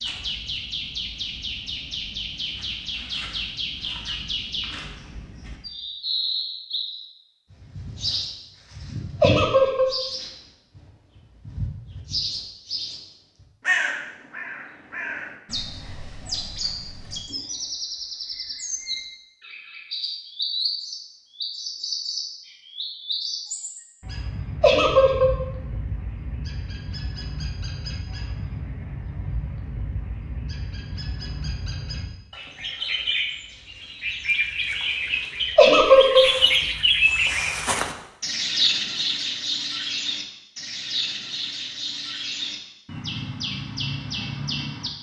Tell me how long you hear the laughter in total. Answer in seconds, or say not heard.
2 s.